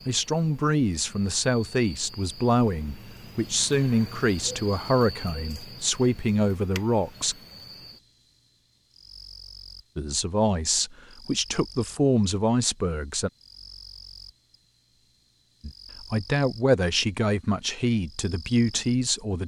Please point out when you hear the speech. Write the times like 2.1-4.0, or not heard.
0.1-7.3, 9.9-13.3, 15.6-19.4.